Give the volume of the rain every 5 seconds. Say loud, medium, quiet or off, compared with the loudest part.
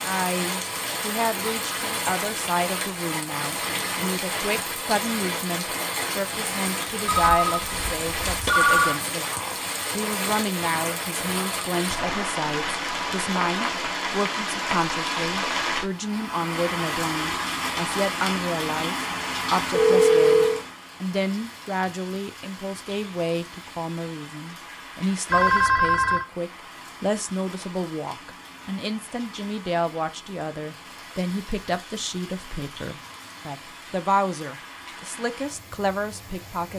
loud, loud, loud, loud, medium, quiet, quiet, quiet.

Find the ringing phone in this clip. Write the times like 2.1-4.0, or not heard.
7.0-8.9, 19.7-20.6, 25.3-26.2.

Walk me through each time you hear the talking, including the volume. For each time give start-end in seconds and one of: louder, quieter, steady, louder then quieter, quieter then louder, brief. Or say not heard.
0.0-36.7 steady.